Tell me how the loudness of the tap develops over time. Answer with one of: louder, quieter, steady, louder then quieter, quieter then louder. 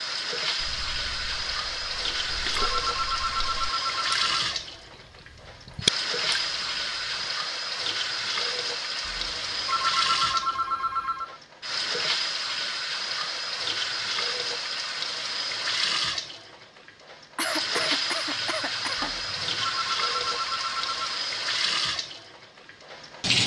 steady.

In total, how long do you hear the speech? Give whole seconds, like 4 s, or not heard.
not heard.